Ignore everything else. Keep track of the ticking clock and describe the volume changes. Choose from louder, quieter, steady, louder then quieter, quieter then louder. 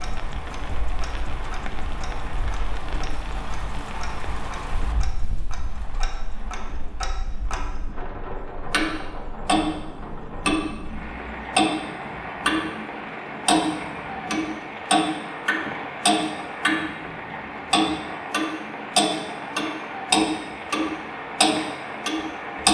louder.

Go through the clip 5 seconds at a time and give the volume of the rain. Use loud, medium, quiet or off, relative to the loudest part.
loud, medium, loud, loud, loud.